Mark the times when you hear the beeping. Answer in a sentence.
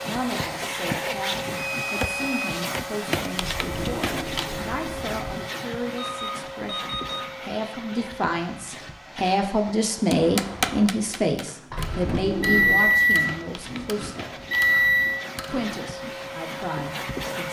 The beeping can be heard from 1.6 to 2.5 s, from 6.0 to 7.2 s and from 12.4 to 15.2 s.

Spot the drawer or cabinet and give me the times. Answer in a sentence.
You can hear the drawer or cabinet from 3.4 to 5.3 s and from 11.7 to 12.9 s.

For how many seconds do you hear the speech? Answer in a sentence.
The speech can be heard for 16 seconds in total.